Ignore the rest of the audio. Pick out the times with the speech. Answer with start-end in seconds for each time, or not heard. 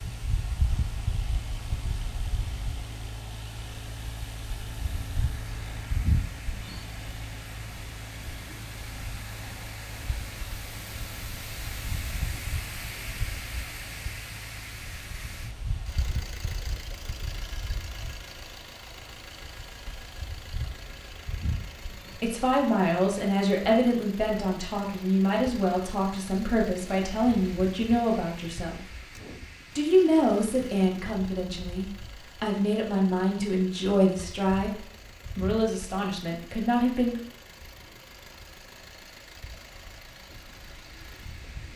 22.1-28.8, 29.8-37.2.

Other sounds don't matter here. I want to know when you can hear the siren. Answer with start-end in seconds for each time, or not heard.
not heard.